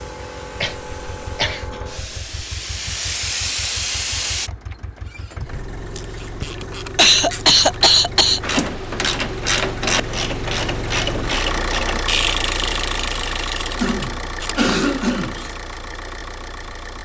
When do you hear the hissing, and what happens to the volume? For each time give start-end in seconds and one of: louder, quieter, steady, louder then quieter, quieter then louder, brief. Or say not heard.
0.0-4.5 louder.